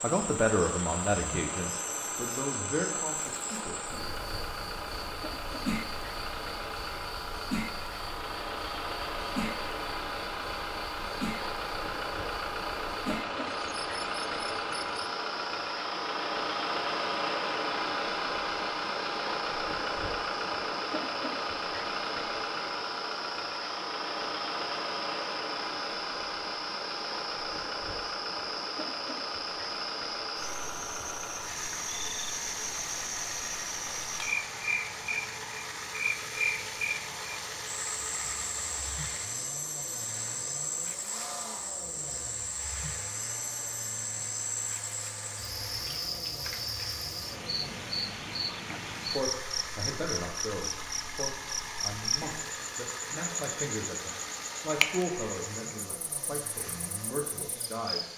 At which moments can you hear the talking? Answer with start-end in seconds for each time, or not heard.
0.0-4.1, 49.1-58.1.